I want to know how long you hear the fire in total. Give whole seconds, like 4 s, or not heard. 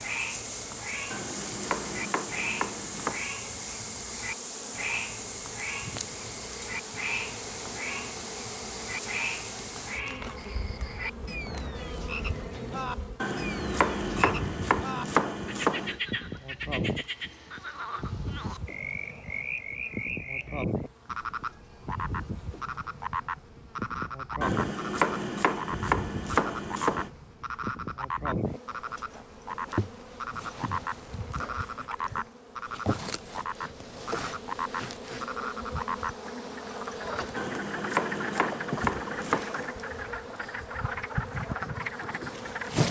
not heard.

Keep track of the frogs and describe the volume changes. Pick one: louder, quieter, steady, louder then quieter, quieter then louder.
steady.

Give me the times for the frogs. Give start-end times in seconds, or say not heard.
0.0-42.8.